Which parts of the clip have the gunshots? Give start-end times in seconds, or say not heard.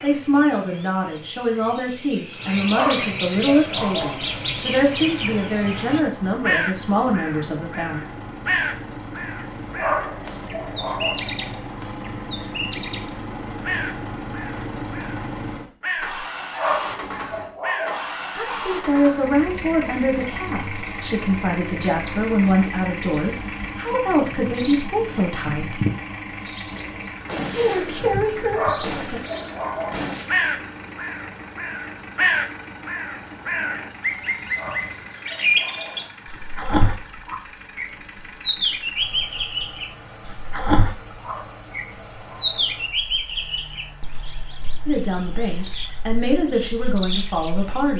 26.7-30.4.